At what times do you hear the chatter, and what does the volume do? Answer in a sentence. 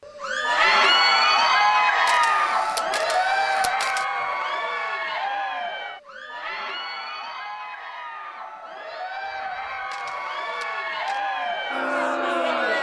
The chatter can be heard from 0.1 to 12.7 s, getting quieter then louder.